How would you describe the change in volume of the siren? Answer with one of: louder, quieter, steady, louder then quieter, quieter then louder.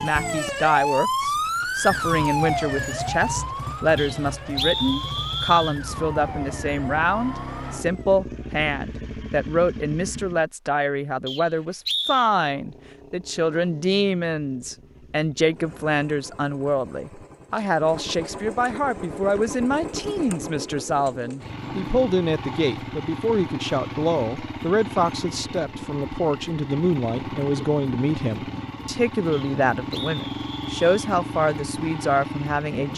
quieter.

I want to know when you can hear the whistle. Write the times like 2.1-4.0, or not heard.
4.0-5.8, 11.2-12.3, 29.3-30.9.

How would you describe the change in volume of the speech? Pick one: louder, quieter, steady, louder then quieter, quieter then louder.
steady.